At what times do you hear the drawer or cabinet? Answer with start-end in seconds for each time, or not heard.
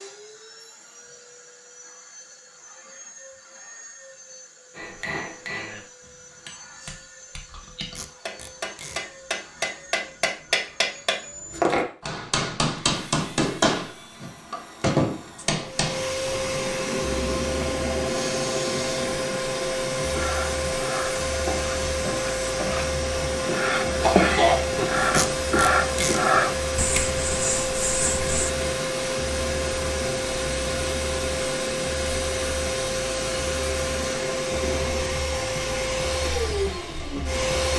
not heard.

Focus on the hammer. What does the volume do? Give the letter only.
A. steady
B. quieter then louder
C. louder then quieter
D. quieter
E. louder
E.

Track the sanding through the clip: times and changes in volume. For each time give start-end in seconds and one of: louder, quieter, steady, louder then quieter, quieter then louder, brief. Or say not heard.
20.1-28.5 louder then quieter.